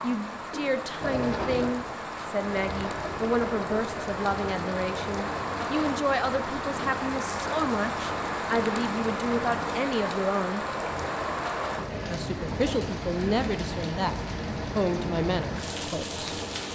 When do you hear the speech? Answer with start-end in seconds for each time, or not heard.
0.0-10.7, 12.1-14.2, 14.8-16.2.